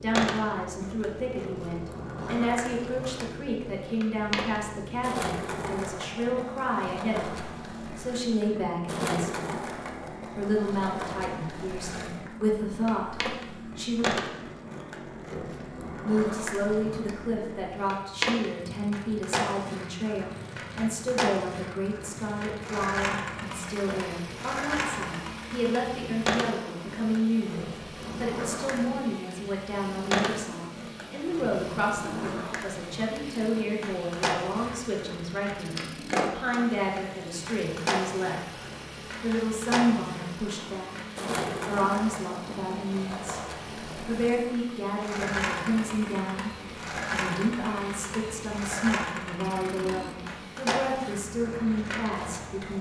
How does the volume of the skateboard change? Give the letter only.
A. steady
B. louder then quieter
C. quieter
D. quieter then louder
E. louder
A.